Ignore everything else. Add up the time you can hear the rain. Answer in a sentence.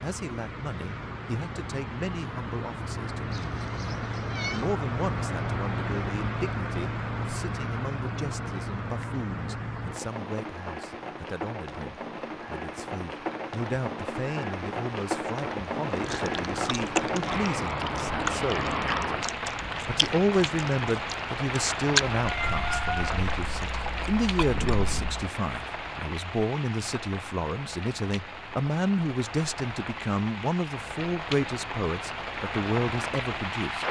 The rain can be heard for 34 seconds in total.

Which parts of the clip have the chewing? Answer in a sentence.
The chewing can be heard from 15.8 to 25.3 s.